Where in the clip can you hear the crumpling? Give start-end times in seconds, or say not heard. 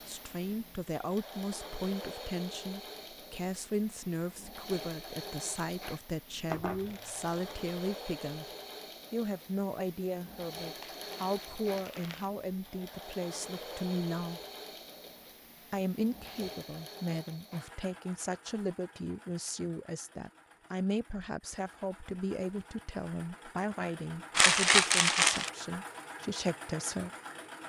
6.5-7.3, 10.8-12.3, 24.4-25.5.